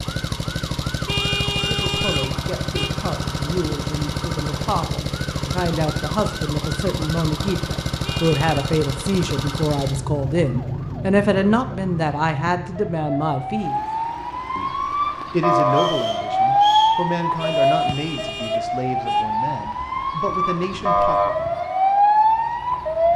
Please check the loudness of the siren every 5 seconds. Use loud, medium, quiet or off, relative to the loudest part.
quiet, quiet, medium, loud, loud.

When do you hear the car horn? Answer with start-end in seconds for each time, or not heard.
1.1-2.9, 8.0-8.7, 17.4-19.2.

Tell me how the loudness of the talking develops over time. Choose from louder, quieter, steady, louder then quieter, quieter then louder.
louder then quieter.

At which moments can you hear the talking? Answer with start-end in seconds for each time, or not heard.
1.6-13.8, 14.6-21.4.